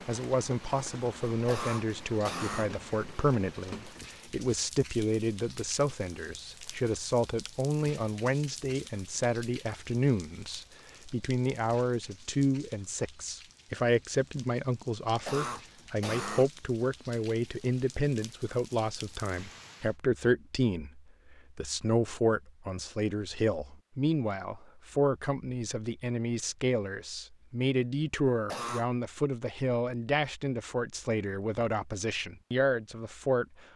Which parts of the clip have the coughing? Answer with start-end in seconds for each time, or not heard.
1.4-2.7, 15.2-16.5, 28.2-28.9.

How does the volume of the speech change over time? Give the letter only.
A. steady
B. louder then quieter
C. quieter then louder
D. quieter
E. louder
A.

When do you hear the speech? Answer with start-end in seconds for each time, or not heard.
0.1-33.5.